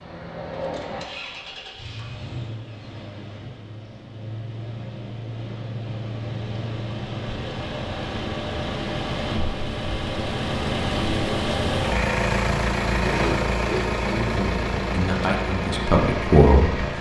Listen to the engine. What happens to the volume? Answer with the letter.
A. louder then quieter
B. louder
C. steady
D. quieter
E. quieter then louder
B.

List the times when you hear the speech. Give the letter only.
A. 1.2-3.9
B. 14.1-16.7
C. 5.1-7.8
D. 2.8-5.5
B.